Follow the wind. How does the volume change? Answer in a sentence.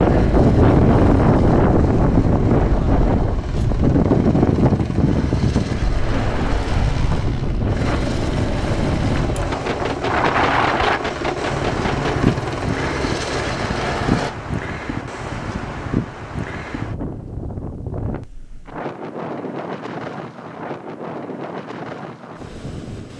The volume of the wind goes down.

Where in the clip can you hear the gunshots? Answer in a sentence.
You can hear the gunshots from 9.5 to 12.3 s.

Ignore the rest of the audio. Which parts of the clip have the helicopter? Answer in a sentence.
You can hear the helicopter from 0.0 to 14.3 s.